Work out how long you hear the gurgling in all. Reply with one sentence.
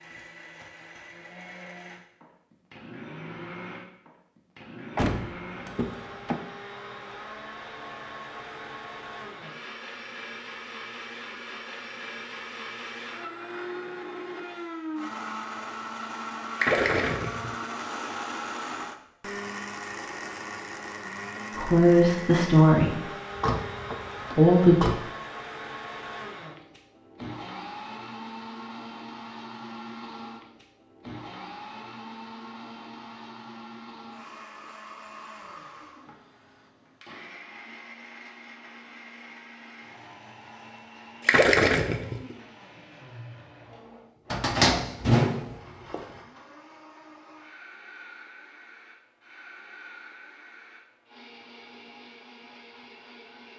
You can hear the gurgling for 2 seconds altogether.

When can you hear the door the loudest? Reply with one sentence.
The volume of the door peaks at 45 seconds.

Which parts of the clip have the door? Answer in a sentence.
The door can be heard from 5.0 to 6.4 s, from 23.3 to 24.9 s and from 44.3 to 46.0 s.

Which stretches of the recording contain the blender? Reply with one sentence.
The blender can be heard from 0.0 to 53.5 s.